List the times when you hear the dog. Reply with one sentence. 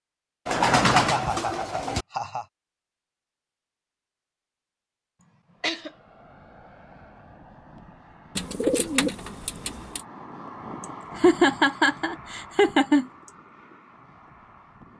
The dog can't be heard in this clip.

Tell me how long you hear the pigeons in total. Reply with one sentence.
You can hear the pigeons for 3 seconds altogether.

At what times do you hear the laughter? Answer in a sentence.
You can hear the laughter from 0.9 to 2.5 s, from 5.2 to 5.9 s and from 10.8 to 13.3 s.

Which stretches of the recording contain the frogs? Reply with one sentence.
You can't hear the frogs here.